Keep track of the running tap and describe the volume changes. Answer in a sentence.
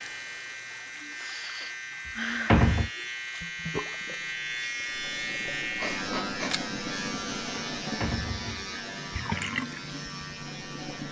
The loudness of the running tap goes up.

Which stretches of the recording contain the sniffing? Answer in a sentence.
The sniffing can be heard from 0.7 to 3.0 s and from 5.8 to 6.5 s.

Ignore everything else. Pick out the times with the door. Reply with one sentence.
You can hear the door from 2.5 to 2.9 s and from 8.0 to 8.8 s.